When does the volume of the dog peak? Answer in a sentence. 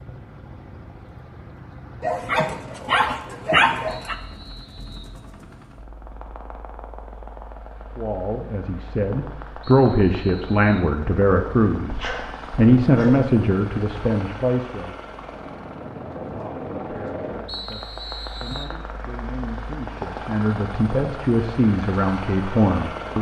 The volume of the dog peaks at 4 seconds.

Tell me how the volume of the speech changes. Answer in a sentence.
The volume of the speech goes down, then up.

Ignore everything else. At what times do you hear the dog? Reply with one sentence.
You can hear the dog from 2.0 to 4.2 s and from 11.8 to 13.3 s.